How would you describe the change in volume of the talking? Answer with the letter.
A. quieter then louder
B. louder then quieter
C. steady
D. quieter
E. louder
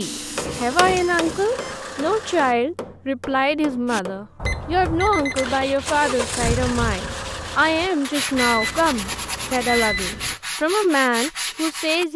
C.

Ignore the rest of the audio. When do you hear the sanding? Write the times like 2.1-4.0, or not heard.
0.0-1.6, 3.9-12.1.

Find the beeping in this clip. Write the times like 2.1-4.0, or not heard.
0.9-1.8, 4.5-5.5, 8.3-10.3.